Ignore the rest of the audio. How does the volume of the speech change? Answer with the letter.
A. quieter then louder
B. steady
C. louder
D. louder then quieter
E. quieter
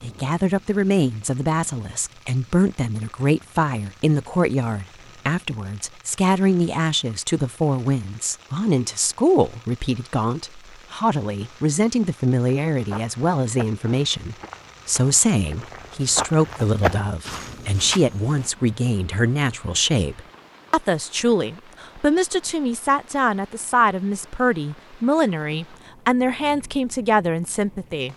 B.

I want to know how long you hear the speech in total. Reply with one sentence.
You can hear the speech for 28 seconds altogether.